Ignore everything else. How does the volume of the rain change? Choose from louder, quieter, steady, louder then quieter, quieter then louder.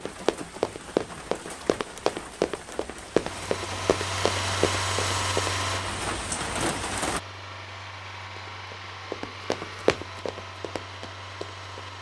louder.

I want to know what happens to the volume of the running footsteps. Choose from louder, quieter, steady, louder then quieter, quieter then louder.
quieter.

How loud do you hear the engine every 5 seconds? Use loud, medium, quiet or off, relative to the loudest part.
loud, loud, medium.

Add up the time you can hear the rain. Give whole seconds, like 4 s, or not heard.
7 s.